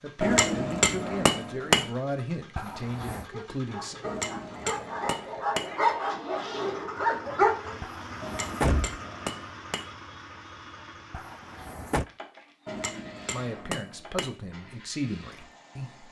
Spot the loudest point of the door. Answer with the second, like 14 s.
9 s.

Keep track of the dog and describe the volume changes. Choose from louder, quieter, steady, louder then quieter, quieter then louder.
louder.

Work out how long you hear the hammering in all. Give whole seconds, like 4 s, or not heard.
7 s.